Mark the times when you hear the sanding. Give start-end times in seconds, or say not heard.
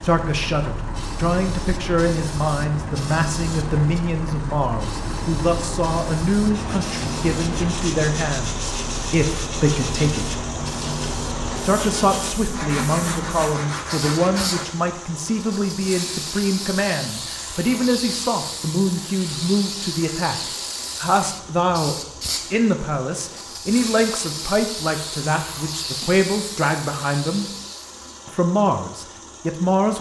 6.5-14.8.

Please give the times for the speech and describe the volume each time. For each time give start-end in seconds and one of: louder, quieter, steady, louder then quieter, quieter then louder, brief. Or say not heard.
0.0-10.4 steady
11.6-27.5 steady
28.2-29.9 brief.